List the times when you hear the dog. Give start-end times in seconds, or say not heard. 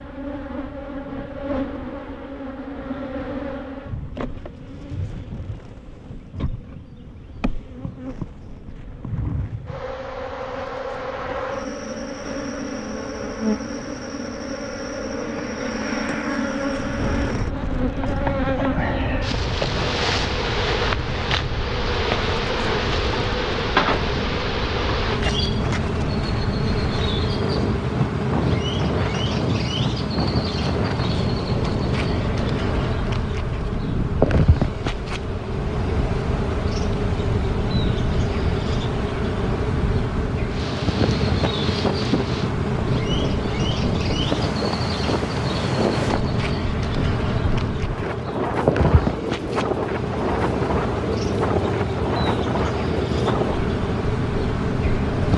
not heard.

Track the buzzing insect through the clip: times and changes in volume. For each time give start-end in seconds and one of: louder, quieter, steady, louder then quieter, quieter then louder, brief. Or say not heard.
0.0-55.3 louder.